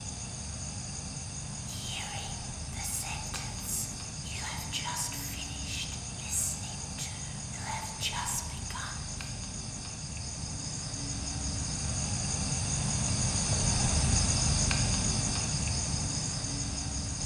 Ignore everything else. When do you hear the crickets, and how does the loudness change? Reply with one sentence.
You can hear the crickets from 0.0 to 17.2 s, getting louder.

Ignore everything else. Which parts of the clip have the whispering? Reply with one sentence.
The whispering can be heard from 1.6 to 9.2 s.